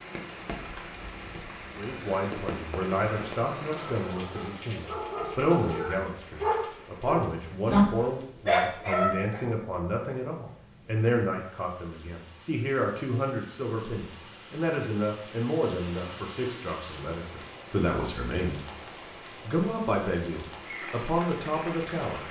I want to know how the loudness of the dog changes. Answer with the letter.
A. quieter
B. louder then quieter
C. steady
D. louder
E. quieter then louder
D.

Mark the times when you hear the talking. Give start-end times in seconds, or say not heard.
1.8-18.9, 19.4-22.2.